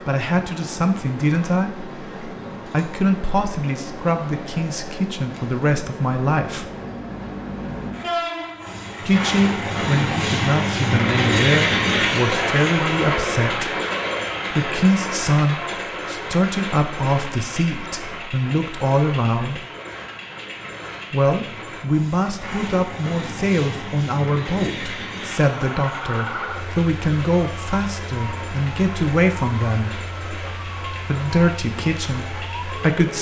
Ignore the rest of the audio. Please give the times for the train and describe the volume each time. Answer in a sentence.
You can hear the train from 0.0 to 33.1 s, getting louder then quieter.